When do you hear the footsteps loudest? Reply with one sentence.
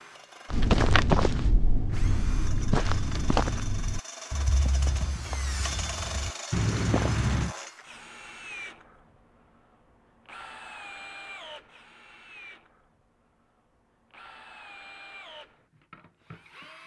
The loudest moment of the footsteps is at 1 second.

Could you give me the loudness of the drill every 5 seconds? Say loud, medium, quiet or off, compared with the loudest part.
loud, loud, medium, medium.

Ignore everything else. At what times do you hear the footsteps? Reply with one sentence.
You can hear the footsteps from 0.5 to 7.5 s.